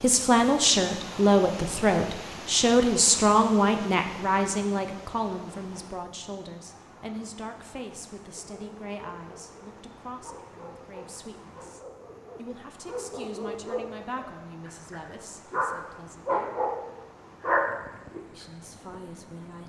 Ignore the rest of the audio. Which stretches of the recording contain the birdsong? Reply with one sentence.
You can't hear the birdsong here.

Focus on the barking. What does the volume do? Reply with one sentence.
The volume of the barking goes up.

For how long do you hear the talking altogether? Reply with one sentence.
You can hear the talking for 18 seconds altogether.